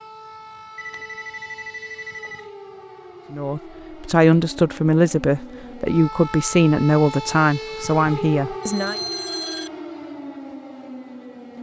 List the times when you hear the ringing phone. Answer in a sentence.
You can hear the ringing phone from 0.8 to 2.5 s and from 8.6 to 9.7 s.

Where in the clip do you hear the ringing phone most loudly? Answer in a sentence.
The loudest moment of the ringing phone is at 9 seconds.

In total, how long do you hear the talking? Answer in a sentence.
The talking can be heard for 6 seconds in total.